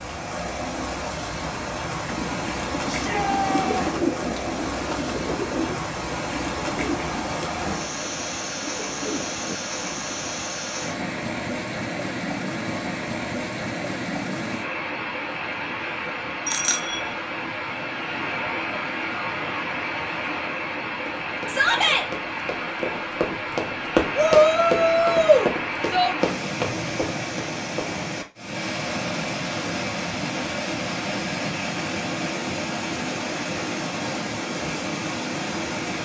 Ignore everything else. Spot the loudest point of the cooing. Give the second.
4 s.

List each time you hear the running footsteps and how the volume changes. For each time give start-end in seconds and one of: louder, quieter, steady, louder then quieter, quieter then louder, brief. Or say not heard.
21.1-27.9 louder then quieter.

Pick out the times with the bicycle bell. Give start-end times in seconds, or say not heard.
16.4-17.1.